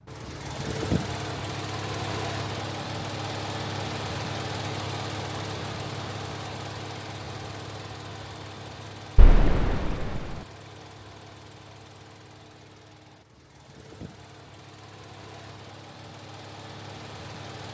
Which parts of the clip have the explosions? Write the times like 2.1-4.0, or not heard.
9.2-10.3.